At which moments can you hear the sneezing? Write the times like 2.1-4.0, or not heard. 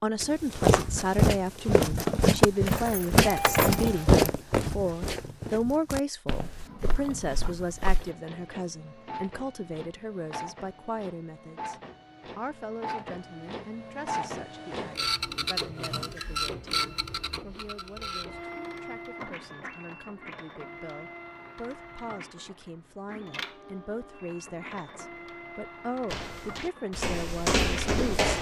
not heard.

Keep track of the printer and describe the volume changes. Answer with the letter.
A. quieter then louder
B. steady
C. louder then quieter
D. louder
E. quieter
C.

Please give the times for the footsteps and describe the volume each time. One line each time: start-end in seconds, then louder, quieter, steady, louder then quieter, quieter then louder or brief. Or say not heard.
0.2-8.1 quieter
26.1-28.3 brief.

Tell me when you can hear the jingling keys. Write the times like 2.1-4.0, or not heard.
2.6-4.1.